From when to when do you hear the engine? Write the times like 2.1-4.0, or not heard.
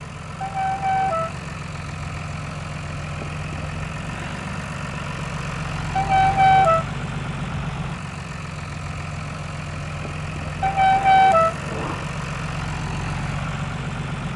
0.0-14.3.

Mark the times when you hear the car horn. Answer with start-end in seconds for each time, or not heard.
0.4-1.4, 6.0-6.8, 10.6-12.1.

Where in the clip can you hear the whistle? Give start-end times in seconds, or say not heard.
not heard.